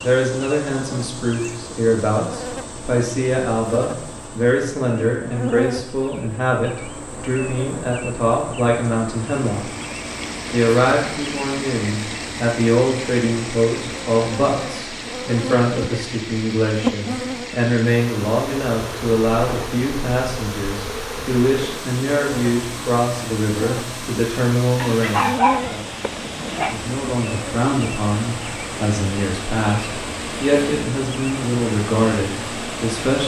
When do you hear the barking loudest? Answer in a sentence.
The volume of the barking peaks at 25 seconds.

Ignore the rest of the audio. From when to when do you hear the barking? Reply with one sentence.
You can hear the barking from 24.8 to 26.8 s.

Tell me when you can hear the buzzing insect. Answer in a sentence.
The buzzing insect can be heard from 0.0 to 33.2 s.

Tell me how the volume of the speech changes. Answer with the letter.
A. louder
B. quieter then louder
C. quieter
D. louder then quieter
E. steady
E.